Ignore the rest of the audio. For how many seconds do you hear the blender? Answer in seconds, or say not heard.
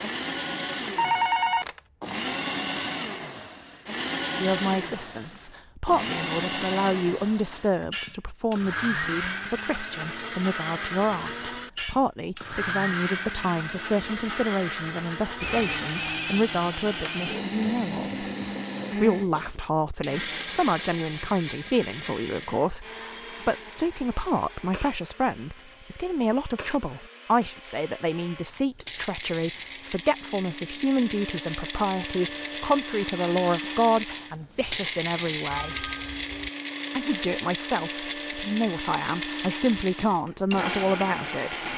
42 s.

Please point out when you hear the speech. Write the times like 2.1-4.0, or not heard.
4.4-18.2, 18.9-35.9, 37.0-41.5.